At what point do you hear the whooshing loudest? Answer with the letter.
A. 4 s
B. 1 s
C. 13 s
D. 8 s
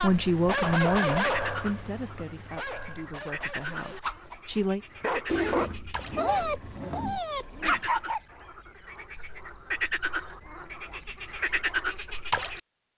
A.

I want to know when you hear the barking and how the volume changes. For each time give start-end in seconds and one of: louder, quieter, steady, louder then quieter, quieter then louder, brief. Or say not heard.
0.0-8.2 quieter then louder.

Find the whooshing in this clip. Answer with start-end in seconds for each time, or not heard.
4.0-4.4, 7.3-7.8.